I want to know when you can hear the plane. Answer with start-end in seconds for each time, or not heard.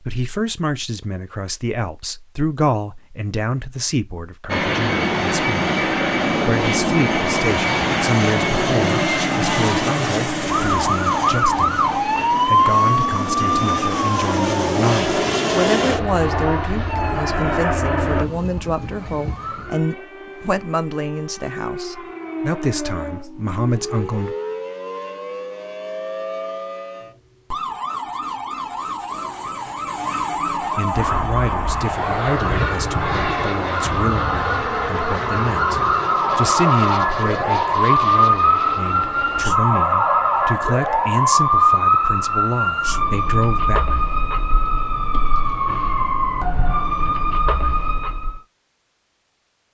4.5-18.2, 30.9-39.5.